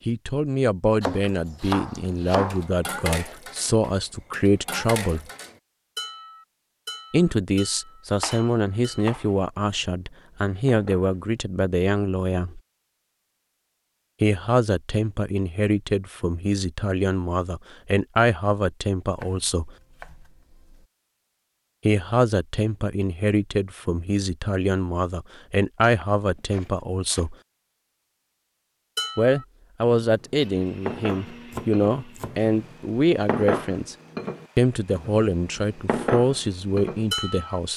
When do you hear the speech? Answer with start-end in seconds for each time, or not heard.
0.1-5.2, 7.1-12.6, 14.2-19.7, 21.9-27.4, 29.1-34.0, 34.5-37.7.